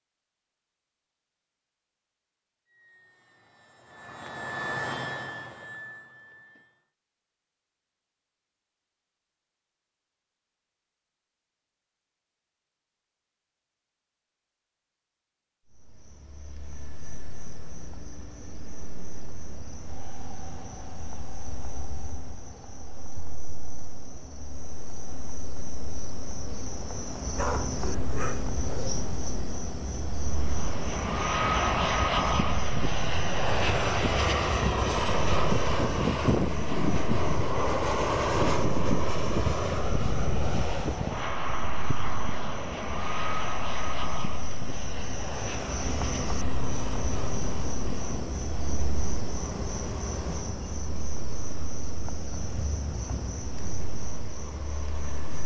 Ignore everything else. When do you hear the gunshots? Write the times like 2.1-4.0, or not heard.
not heard.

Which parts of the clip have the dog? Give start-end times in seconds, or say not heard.
27.4-29.4.